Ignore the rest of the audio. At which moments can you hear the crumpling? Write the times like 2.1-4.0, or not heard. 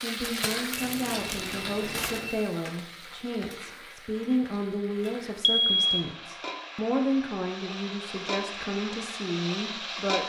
0.2-2.2.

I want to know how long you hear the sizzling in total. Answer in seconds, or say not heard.
10 s.